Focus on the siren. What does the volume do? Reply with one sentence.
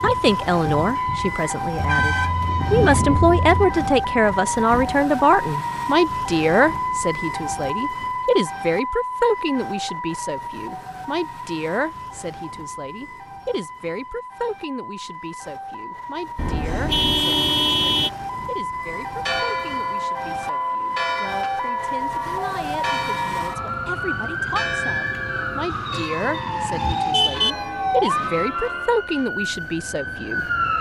The loudness of the siren goes down, then up.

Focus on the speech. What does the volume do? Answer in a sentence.
The loudness of the speech goes down, then up.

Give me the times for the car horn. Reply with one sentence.
The car horn can be heard from 1.8 to 3.8 s, from 16.4 to 18.1 s and from 25.7 to 27.6 s.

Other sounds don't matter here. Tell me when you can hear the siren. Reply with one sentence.
You can hear the siren from 0.0 to 30.7 s.